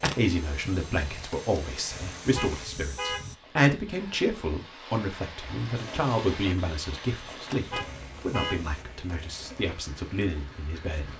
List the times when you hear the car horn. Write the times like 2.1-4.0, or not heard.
2.4-3.3, 7.7-8.7.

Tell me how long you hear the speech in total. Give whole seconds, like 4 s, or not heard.
11 s.